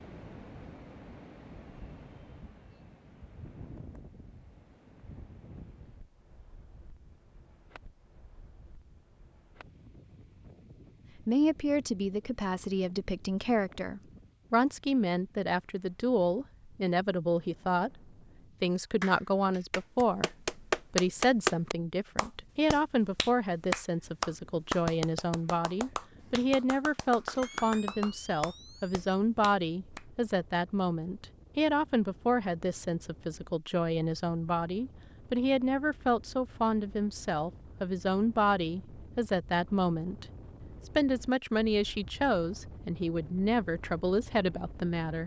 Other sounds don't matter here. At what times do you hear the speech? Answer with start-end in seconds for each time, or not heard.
11.2-17.9, 18.6-40.2, 41.0-45.2.